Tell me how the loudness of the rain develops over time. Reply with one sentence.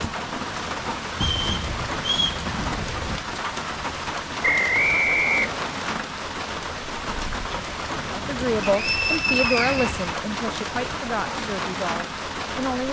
The volume of the rain stays about the same.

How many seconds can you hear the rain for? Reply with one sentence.
You can hear the rain for 13 seconds altogether.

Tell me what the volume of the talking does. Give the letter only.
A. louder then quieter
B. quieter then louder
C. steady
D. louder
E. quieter
E.